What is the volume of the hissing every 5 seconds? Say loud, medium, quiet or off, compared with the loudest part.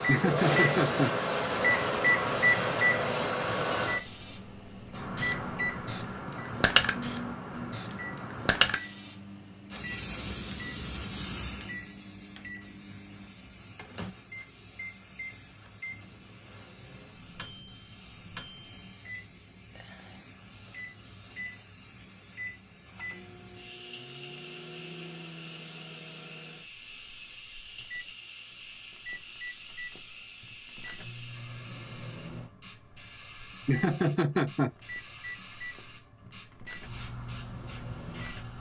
loud, loud, medium, quiet, quiet, quiet, quiet, quiet.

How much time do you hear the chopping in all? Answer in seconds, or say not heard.
not heard.